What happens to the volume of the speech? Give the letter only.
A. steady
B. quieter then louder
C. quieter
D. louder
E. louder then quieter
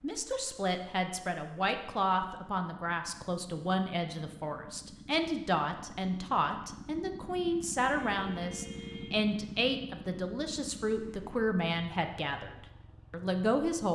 A.